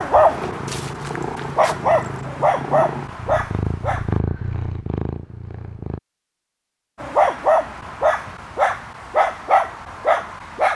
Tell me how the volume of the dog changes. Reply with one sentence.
The loudness of the dog stays about the same.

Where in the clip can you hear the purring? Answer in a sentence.
The purring can be heard from 0.0 to 6.0 s.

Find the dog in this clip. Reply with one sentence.
You can hear the dog from 0.0 to 4.2 s and from 7.0 to 10.7 s.